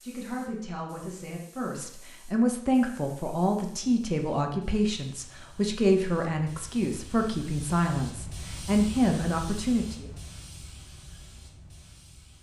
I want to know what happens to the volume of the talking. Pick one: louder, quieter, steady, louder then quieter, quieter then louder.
louder.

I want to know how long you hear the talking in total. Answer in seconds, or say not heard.
10 s.